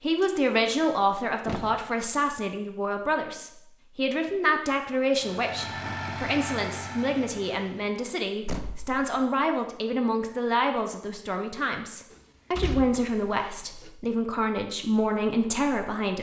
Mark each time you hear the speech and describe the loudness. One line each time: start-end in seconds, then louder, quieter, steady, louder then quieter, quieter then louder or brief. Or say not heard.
0.0-16.1 steady.